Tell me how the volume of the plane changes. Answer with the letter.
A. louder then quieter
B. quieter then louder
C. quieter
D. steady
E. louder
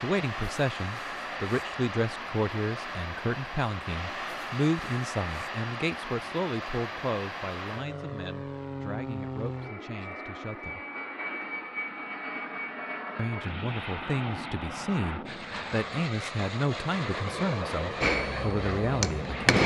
D.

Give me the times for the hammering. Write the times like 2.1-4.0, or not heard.
18.0-19.6.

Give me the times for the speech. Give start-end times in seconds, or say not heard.
0.0-10.8, 13.2-19.6.